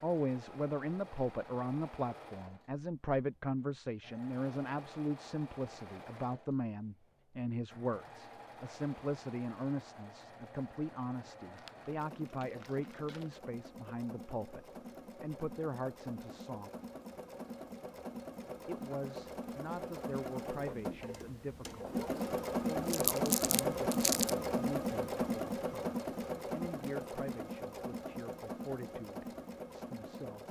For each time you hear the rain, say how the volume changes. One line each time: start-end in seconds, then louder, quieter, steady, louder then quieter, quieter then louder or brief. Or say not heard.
not heard.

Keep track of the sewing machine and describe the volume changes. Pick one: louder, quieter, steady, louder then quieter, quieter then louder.
louder.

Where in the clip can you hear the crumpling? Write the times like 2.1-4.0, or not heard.
11.5-13.4, 22.9-24.4.